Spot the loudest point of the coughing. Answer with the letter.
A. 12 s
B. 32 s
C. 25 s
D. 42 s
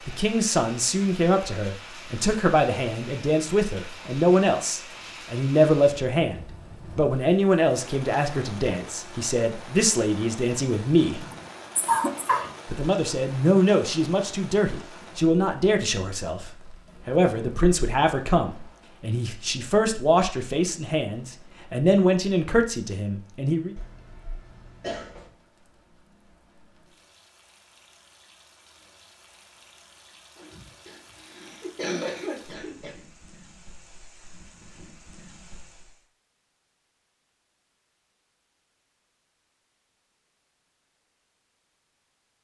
A.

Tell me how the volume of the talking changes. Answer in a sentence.
The loudness of the talking stays about the same.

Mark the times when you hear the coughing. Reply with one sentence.
You can hear the coughing from 11.2 to 12.5 s, from 23.8 to 25.3 s and from 30.4 to 33.0 s.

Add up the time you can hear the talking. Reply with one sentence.
The talking can be heard for 22 seconds in total.